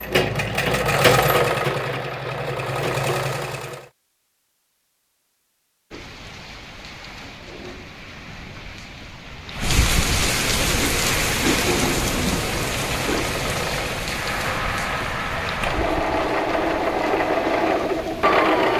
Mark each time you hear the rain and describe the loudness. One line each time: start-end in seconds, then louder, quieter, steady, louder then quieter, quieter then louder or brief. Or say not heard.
5.9-18.7 louder then quieter.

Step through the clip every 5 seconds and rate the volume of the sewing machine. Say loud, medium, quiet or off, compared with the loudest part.
loud, off, medium, loud.